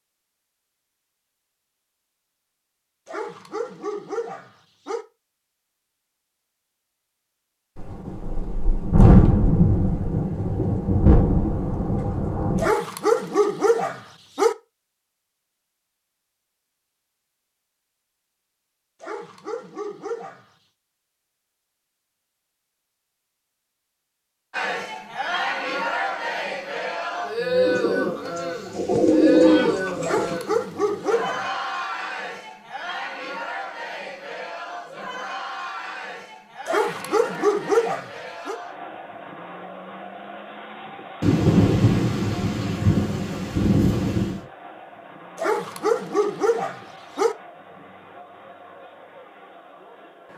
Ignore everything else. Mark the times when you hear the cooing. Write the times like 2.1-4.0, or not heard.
27.6-30.4.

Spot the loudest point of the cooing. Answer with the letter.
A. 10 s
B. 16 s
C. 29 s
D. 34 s
C.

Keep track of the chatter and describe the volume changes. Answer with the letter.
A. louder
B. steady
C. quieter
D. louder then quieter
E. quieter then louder
C.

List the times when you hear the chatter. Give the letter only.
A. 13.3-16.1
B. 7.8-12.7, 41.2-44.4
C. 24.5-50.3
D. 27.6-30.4
C.